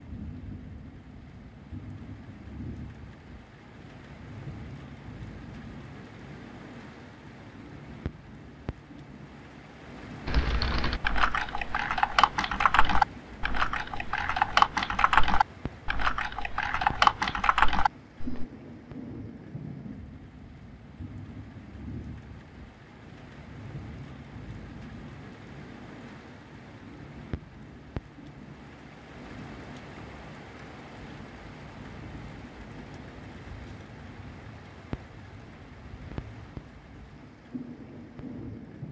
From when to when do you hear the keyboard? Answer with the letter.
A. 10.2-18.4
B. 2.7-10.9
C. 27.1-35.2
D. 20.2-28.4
A.